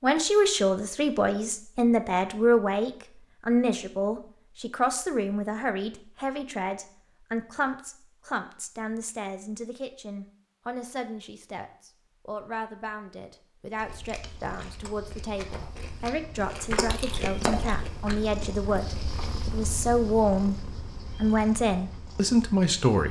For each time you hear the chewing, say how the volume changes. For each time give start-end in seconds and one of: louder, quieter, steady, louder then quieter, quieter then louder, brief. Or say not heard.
13.7-19.3 louder then quieter.